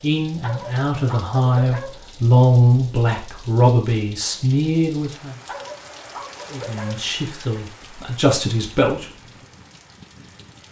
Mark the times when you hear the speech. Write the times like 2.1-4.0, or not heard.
0.0-5.3, 6.5-9.1.